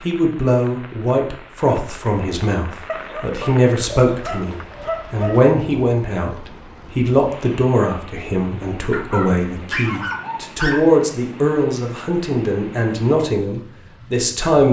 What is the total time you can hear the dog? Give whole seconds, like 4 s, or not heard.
5 s.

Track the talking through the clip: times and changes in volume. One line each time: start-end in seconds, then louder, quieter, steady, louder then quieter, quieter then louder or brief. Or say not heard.
0.0-14.6 steady.